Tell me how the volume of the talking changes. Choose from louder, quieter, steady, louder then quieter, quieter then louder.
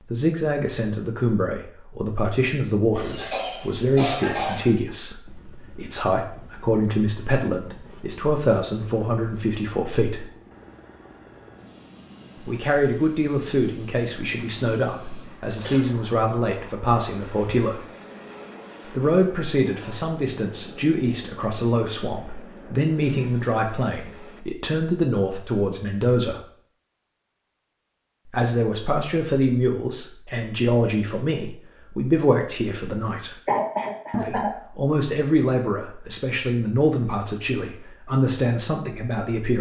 steady.